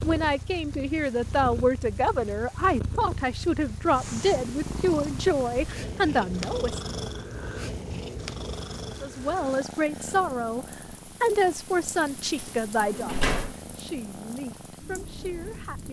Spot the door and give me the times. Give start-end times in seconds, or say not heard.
12.3-13.6.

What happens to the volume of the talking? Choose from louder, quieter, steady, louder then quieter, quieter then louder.
quieter.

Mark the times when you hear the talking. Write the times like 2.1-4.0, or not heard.
0.0-6.8, 9.0-15.8.